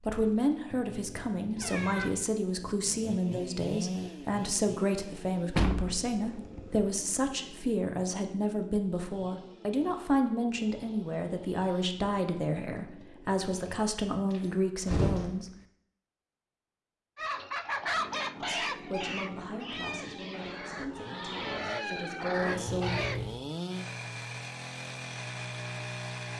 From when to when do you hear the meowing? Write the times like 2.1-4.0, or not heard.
0.7-2.1, 22.6-23.5.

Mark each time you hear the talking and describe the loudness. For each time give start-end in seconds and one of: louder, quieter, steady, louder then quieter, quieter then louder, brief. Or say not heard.
0.0-15.4 steady
18.4-23.0 quieter then louder.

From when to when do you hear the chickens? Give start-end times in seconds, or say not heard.
17.1-23.2.